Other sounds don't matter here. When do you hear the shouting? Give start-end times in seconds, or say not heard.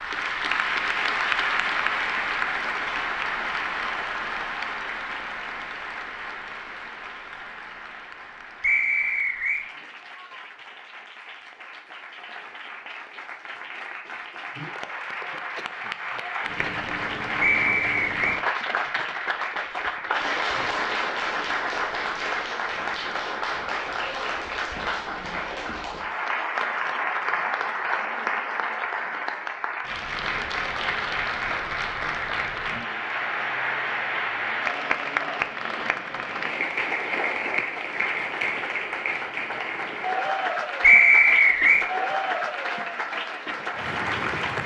not heard.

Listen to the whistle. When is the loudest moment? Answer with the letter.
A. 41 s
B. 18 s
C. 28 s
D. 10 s
A.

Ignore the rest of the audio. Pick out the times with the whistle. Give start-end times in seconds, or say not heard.
8.6-9.7, 17.4-18.4, 40.8-41.9.